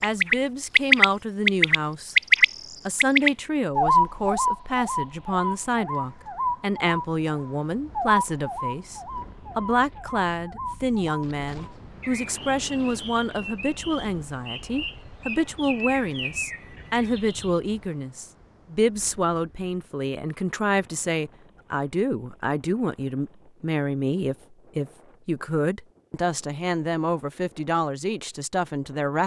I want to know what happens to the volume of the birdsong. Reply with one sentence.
The loudness of the birdsong goes down.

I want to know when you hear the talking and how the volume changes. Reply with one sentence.
The talking can be heard briefly from 0.0 to 2.1 s; and from 2.9 to 29.2 s, at a steady volume.